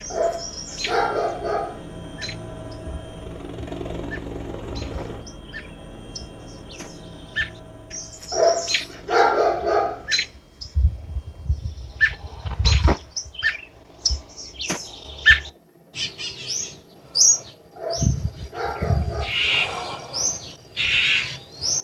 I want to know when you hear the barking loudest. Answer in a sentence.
The volume of the barking peaks at 9 seconds.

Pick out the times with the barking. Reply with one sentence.
The barking can be heard from 0.1 to 1.8 s, from 8.3 to 10.0 s and from 17.8 to 19.3 s.